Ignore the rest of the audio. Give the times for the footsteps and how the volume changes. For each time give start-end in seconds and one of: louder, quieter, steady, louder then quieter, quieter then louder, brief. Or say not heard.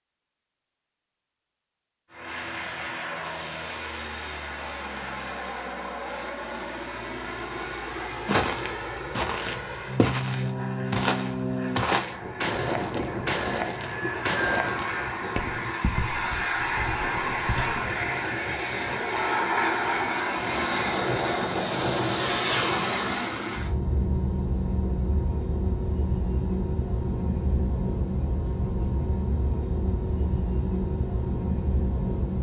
7.5-17.8 quieter.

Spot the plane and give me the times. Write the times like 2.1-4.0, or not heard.
2.1-32.3.